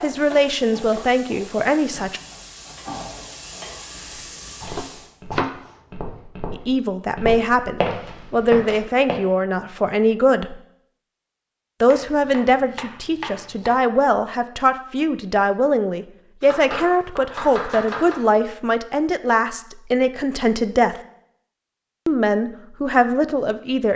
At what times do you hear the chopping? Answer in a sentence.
You can hear the chopping from 4.6 to 5.5 s, from 11.9 to 13.8 s and from 16.4 to 18.2 s.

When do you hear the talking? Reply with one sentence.
The talking can be heard from 0.0 to 2.2 s, from 6.5 to 10.6 s, from 11.8 to 20.9 s and from 22.1 to 23.9 s.